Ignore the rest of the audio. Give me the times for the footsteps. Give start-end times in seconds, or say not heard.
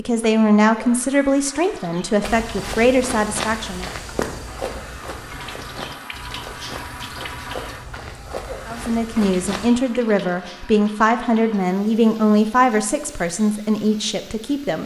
2.2-9.7.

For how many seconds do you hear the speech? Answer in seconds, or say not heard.
10 s.